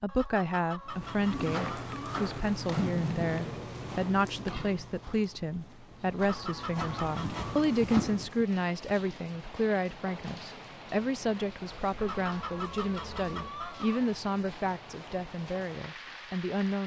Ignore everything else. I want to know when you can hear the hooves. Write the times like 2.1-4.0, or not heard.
0.8-8.4.